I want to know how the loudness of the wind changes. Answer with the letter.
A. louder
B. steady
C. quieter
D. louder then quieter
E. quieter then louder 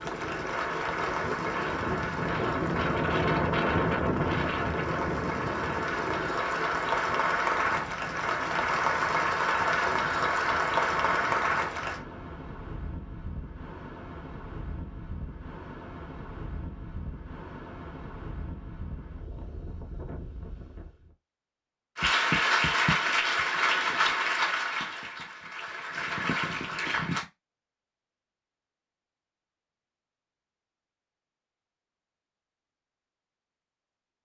C.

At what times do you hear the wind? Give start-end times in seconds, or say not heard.
0.0-21.1.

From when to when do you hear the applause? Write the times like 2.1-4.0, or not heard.
0.0-12.0, 21.9-27.2.